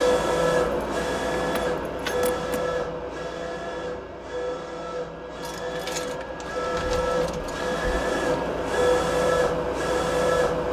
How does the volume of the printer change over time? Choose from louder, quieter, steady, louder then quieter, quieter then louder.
quieter then louder.